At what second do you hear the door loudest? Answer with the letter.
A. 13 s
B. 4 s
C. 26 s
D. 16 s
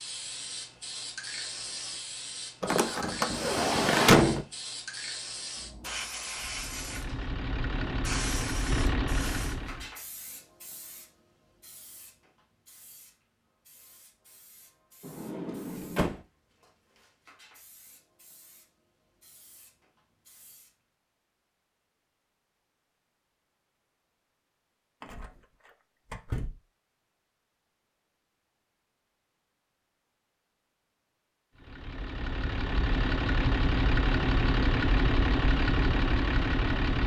B.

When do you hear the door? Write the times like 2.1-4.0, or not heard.
2.6-4.5, 15.0-16.2, 25.0-26.6.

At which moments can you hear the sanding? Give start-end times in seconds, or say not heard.
not heard.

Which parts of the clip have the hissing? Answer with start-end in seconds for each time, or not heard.
0.0-20.8.